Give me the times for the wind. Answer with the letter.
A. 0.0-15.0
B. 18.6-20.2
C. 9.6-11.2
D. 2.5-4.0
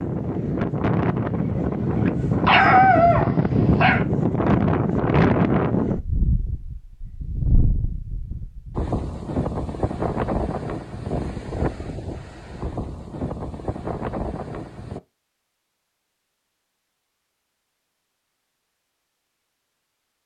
A.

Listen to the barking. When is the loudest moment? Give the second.
3 s.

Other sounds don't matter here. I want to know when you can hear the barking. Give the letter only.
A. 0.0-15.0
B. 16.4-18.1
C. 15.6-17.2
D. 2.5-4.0
D.